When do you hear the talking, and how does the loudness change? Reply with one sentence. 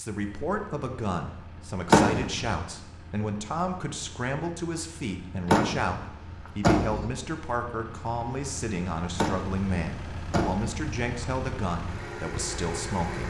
You can hear the talking from 0.0 to 13.2 s, at a steady volume.